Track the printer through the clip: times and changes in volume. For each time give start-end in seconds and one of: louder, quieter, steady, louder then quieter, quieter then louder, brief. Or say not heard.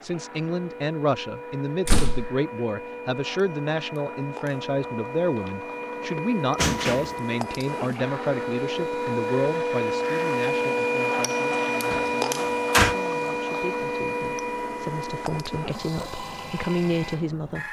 0.0-17.6 louder then quieter.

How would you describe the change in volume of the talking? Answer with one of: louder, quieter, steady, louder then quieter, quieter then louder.
quieter then louder.